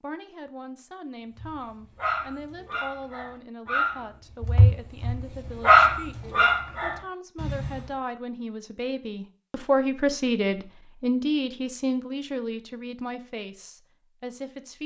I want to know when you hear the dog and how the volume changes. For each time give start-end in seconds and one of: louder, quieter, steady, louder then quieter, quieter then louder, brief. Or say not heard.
1.4-8.0 louder then quieter.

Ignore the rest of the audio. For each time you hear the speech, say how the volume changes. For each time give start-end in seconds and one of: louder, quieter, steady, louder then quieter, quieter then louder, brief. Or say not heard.
0.0-14.8 louder then quieter.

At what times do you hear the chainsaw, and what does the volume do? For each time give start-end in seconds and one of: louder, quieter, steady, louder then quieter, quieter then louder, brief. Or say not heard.
not heard.